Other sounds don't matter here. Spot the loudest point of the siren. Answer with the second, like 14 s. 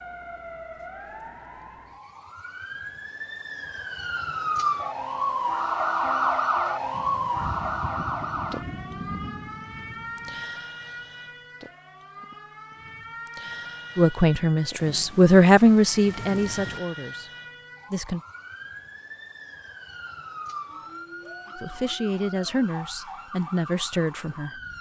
6 s.